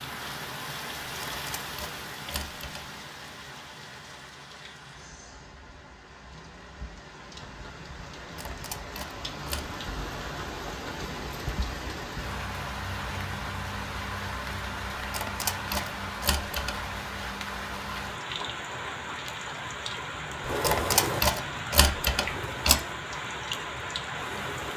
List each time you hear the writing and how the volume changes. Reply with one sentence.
You can't hear the writing here.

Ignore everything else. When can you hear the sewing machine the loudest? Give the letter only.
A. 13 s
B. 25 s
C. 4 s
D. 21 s
D.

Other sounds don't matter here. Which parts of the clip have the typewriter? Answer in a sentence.
The typewriter can be heard from 1.1 to 2.9 s, from 8.2 to 9.7 s, from 14.9 to 16.8 s and from 20.4 to 22.8 s.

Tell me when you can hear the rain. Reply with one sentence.
The rain can be heard from 0.0 to 24.7 s.